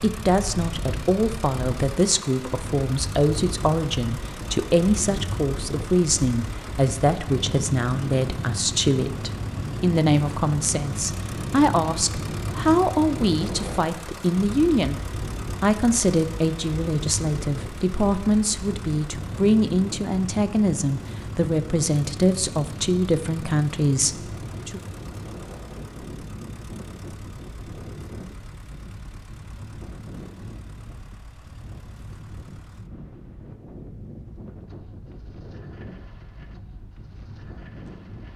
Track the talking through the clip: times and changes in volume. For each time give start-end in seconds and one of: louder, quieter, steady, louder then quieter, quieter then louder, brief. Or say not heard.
0.0-24.8 steady.